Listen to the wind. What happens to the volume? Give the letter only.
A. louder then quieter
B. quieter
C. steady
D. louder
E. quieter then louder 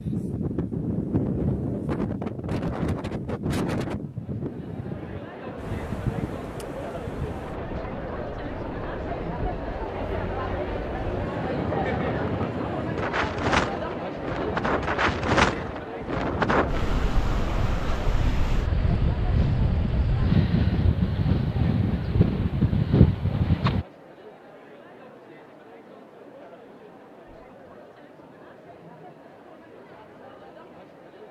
E.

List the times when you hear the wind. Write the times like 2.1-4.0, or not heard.
0.0-23.9.